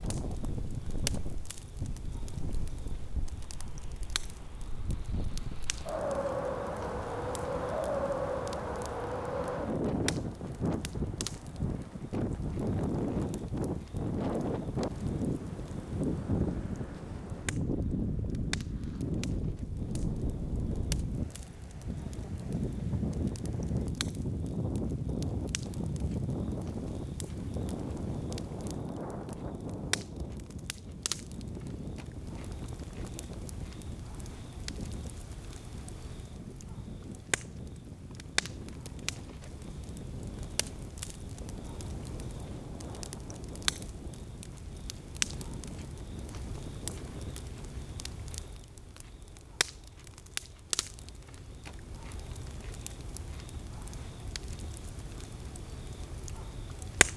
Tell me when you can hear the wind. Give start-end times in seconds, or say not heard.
0.0-47.5.